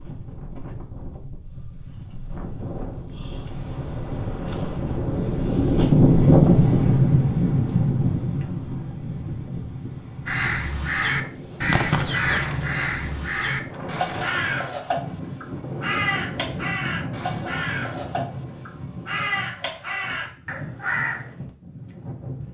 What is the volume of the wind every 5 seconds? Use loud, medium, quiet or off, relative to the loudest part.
quiet, loud, quiet, quiet, quiet.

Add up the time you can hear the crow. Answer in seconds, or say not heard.
11 s.